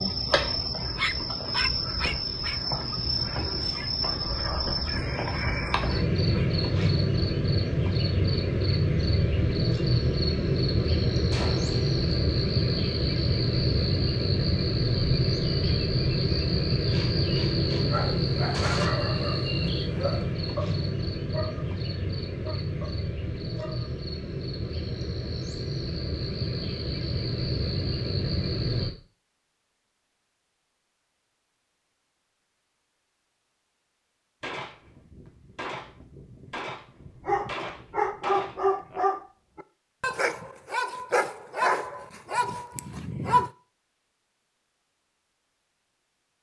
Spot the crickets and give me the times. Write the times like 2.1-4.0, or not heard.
0.0-28.9.